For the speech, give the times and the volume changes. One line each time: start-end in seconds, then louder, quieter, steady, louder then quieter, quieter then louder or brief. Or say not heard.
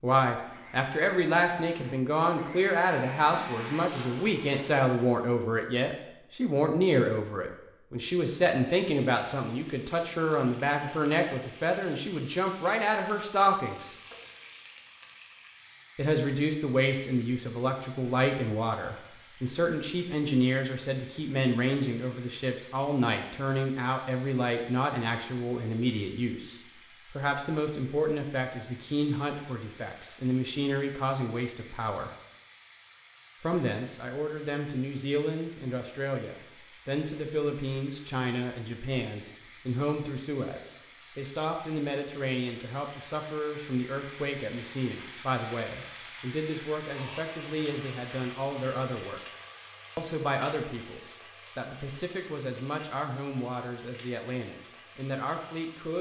0.0-13.9 steady
15.9-32.1 steady
33.4-49.2 steady
50.0-55.9 steady.